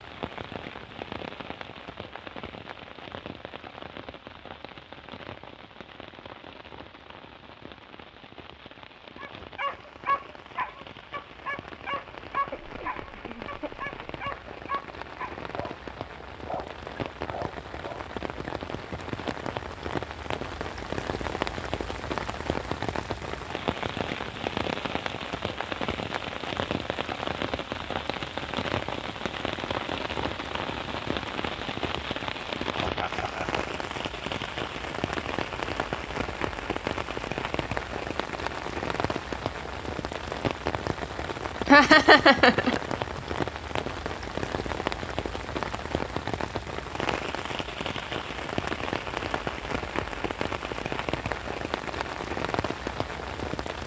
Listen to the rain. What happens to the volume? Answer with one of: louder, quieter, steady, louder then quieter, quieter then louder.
louder.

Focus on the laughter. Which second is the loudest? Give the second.
42 s.